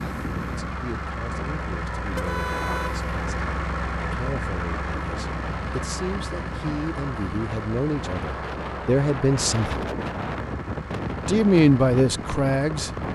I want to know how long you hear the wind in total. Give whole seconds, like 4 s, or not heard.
13 s.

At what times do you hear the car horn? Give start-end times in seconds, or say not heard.
2.1-3.0.